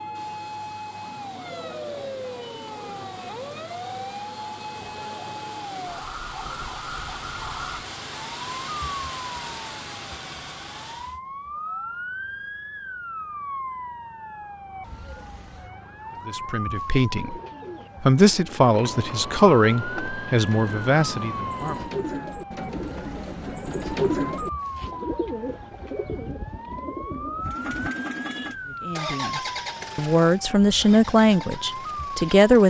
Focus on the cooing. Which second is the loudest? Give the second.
24 s.